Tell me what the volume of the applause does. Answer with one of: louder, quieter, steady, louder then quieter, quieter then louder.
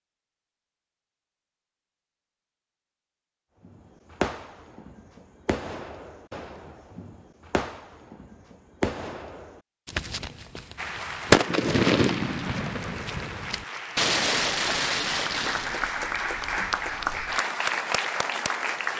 louder.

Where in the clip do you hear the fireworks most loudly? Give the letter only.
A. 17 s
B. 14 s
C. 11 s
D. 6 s
C.